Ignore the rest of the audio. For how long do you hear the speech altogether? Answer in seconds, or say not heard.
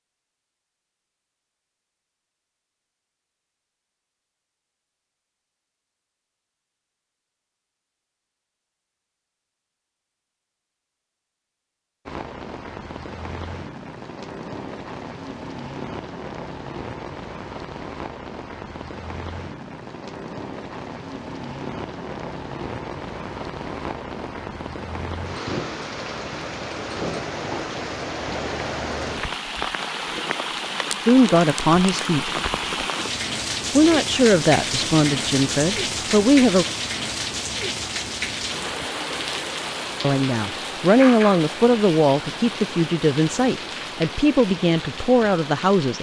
10 s.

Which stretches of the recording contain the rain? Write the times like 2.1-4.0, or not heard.
12.1-45.9.